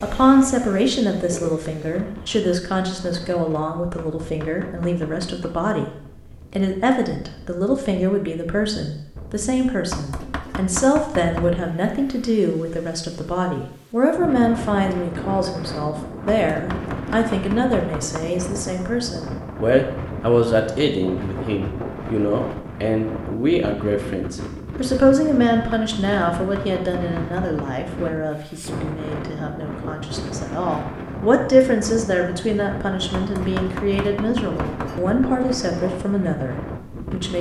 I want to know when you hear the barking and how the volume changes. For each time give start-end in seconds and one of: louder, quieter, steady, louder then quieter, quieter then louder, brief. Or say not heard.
not heard.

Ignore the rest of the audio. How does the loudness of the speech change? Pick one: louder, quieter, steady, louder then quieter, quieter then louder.
steady.